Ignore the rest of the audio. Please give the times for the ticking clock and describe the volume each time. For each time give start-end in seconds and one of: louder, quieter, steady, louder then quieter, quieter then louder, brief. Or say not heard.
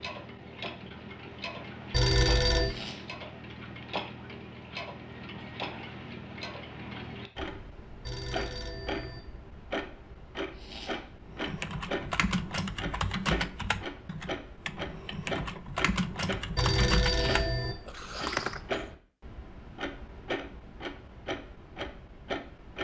0.0-22.7 steady.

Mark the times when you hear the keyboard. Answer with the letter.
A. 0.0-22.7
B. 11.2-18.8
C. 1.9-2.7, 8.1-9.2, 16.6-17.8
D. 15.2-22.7
B.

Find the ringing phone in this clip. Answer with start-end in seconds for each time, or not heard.
1.9-2.7, 8.1-9.2, 16.6-17.8.